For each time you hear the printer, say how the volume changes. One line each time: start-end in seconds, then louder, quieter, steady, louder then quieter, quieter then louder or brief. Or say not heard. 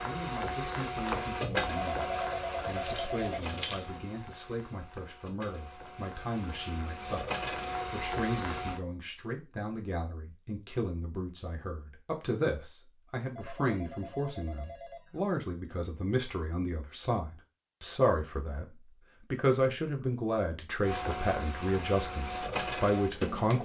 0.0-8.8 quieter then louder
20.8-23.6 brief.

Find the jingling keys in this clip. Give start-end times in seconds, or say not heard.
2.6-4.0.